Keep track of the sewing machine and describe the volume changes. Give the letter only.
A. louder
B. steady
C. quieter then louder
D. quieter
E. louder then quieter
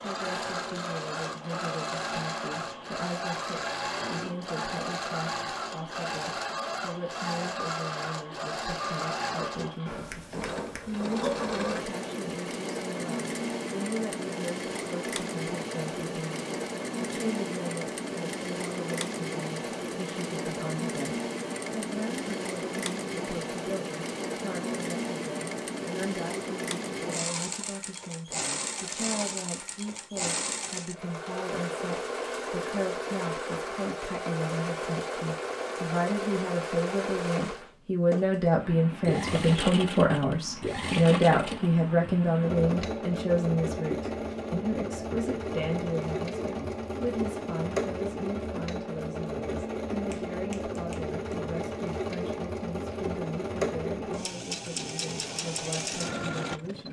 B.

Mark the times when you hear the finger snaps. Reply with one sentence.
You can hear the finger snaps from 10.1 to 11.3 s and from 50.1 to 51.4 s.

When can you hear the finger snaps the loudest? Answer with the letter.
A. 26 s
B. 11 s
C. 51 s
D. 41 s
B.